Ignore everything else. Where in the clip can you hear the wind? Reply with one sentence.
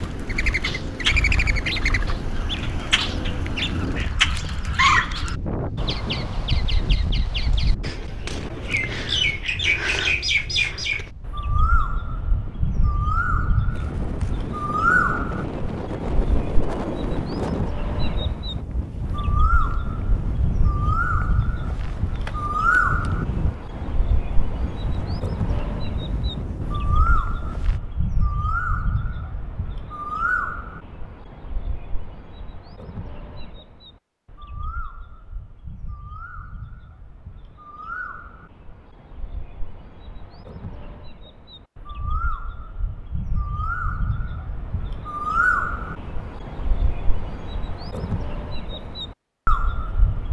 The wind can be heard from 0.0 to 27.8 s.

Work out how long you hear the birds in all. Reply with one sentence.
The birds can be heard for 50 seconds in total.